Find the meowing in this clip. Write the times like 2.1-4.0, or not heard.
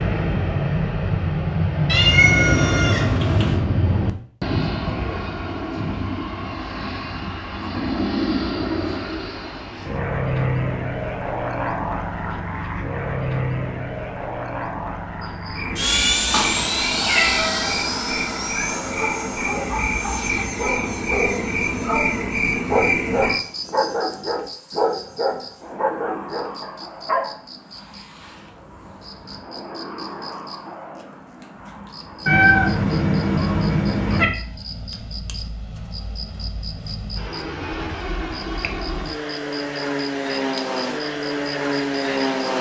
1.9-3.5, 16.3-17.6, 32.2-34.2.